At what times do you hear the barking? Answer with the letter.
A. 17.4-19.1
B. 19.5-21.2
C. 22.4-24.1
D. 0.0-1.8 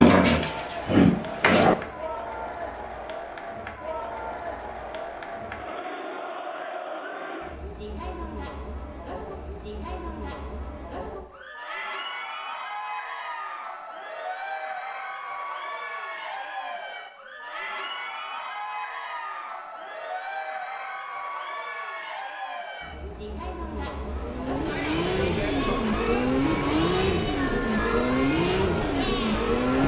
D.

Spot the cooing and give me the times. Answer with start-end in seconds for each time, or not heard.
not heard.